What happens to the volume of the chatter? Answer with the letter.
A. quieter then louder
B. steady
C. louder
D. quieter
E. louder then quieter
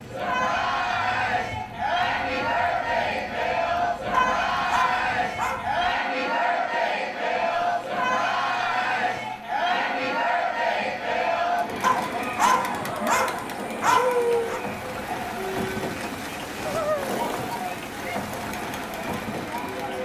D.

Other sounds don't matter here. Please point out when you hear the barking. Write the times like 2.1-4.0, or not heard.
4.1-5.8, 11.8-14.6.